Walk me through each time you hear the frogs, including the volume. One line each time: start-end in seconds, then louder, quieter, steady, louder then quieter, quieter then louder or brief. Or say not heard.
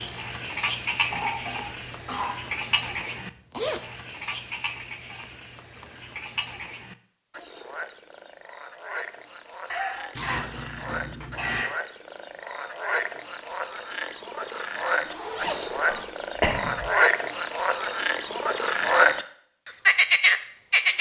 0.0-20.9 quieter then louder.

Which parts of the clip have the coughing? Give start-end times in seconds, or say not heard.
1.1-2.4, 9.7-11.7, 15.9-16.9.